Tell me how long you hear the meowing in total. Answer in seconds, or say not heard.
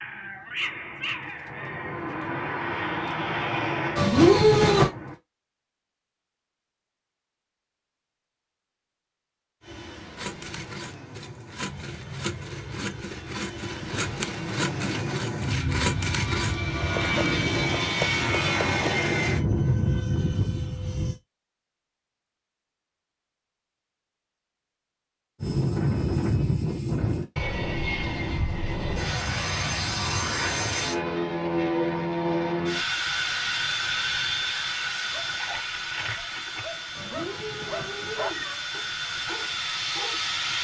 3 s.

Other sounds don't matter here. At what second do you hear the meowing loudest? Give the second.
4 s.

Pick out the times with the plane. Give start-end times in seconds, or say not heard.
0.0-5.2, 9.6-21.1, 25.4-40.5.